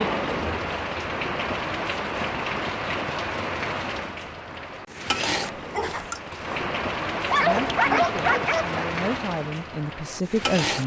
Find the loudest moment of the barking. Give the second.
8 s.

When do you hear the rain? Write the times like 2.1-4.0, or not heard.
0.0-10.8.